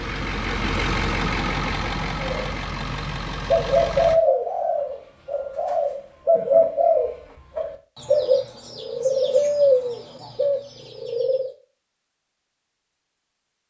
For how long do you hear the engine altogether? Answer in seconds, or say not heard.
4 s.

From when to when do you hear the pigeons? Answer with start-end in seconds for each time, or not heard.
2.2-11.5.